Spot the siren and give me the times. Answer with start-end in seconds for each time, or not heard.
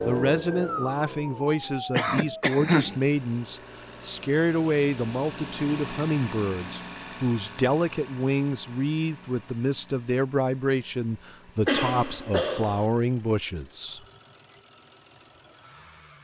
0.0-3.0.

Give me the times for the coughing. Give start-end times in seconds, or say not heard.
1.9-3.0, 11.7-12.8.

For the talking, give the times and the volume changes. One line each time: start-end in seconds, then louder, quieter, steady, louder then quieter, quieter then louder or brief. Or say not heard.
0.0-14.0 steady.